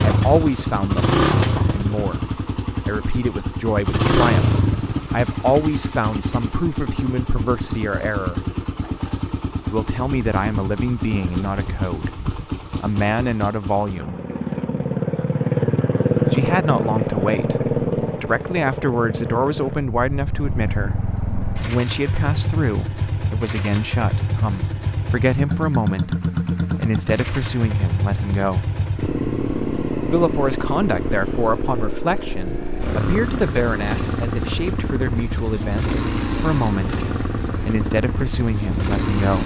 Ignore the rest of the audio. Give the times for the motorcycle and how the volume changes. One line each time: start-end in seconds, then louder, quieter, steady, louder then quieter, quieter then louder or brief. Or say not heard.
0.0-39.4 steady.